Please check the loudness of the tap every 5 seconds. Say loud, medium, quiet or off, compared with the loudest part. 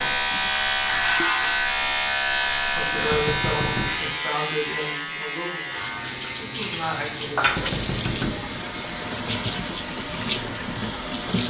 quiet, loud, loud.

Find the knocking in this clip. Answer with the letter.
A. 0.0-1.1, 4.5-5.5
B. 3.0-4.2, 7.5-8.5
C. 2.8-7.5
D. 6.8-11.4
B.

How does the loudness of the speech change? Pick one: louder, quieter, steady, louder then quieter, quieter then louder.
quieter then louder.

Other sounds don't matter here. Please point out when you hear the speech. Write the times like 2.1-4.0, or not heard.
2.8-7.5.